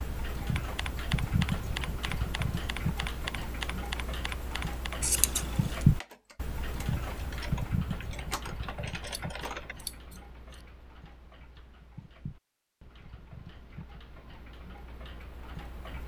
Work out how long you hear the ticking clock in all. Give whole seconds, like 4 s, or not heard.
16 s.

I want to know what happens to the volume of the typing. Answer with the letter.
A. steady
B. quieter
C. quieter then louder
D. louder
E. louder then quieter
C.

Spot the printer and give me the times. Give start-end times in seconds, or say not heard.
not heard.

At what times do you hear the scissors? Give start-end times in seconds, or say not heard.
5.0-5.8, 9.1-10.7.